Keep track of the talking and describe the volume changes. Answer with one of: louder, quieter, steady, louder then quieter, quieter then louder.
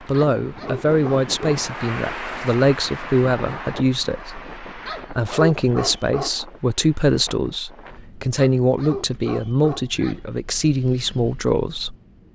steady.